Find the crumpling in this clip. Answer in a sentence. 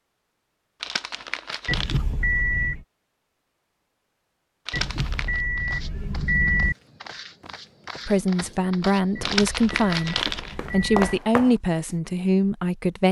The crumpling can be heard from 0.8 to 2.0 s, from 4.7 to 5.4 s and from 9.2 to 10.6 s.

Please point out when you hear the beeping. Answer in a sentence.
The beeping can be heard from 1.6 to 2.9 s, from 4.7 to 6.8 s and from 9.2 to 11.2 s.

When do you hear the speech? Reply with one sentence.
The speech can be heard from 8.1 to 13.0 s.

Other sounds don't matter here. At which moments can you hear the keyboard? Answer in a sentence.
You can't hear the keyboard here.